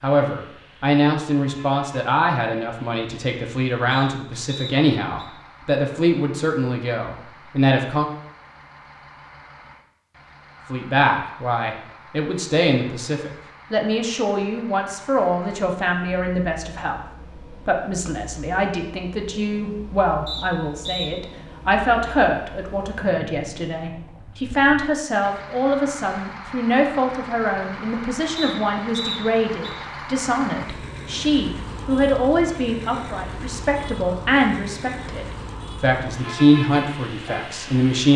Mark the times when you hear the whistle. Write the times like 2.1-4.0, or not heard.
3.9-5.3, 20.2-21.1, 28.4-29.8.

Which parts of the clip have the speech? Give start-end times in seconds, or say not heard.
0.0-8.1, 10.7-38.1.